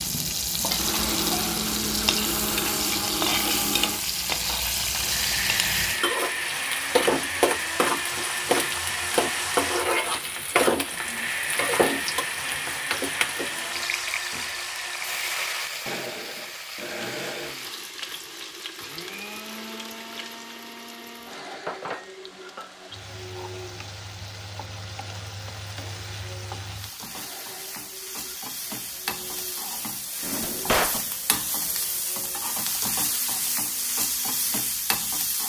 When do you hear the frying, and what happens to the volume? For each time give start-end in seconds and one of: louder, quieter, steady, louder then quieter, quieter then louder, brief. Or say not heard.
0.0-35.4 quieter then louder.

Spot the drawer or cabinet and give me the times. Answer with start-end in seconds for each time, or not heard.
30.2-31.0.